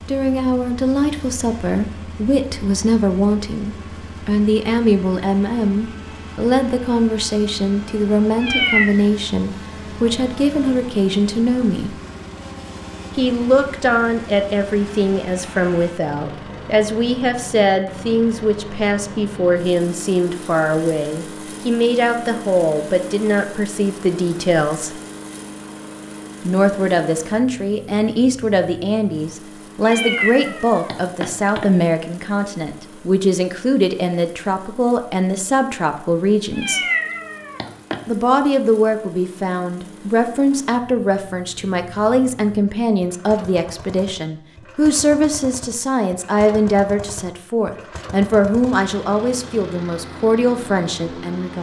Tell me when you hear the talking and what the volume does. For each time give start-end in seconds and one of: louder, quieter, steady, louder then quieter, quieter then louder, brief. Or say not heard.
0.1-11.9 steady
13.2-24.9 steady
26.4-36.8 steady
38.0-51.5 steady.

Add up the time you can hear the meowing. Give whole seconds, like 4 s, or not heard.
4 s.